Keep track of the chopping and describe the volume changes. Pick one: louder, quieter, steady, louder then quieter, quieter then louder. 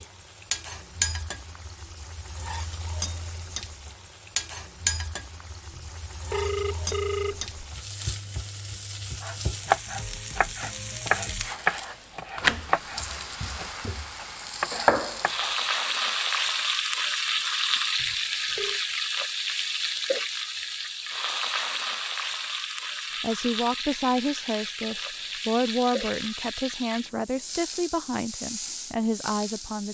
quieter then louder.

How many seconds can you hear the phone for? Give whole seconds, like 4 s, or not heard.
3 s.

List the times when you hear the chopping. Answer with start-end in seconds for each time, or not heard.
9.2-15.9.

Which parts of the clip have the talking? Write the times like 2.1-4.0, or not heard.
23.2-29.8.